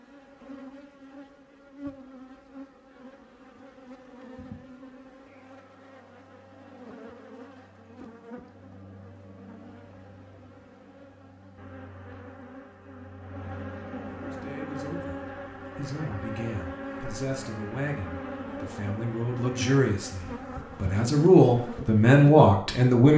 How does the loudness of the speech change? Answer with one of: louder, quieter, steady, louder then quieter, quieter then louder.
louder.